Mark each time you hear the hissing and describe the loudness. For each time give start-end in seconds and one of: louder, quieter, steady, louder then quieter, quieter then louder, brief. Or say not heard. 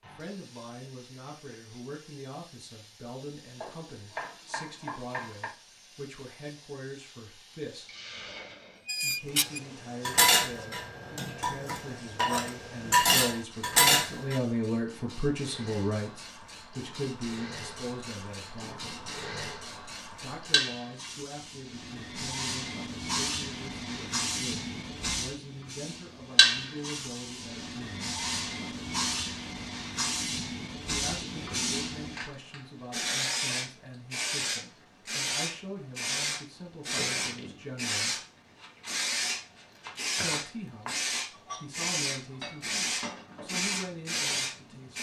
0.0-44.9 louder.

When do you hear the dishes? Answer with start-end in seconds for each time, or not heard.
8.8-14.4, 41.3-44.9.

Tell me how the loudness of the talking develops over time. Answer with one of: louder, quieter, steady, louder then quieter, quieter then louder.
louder then quieter.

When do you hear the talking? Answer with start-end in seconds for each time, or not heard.
0.0-7.9, 9.0-18.9, 20.2-28.1, 30.9-38.2, 40.1-44.9.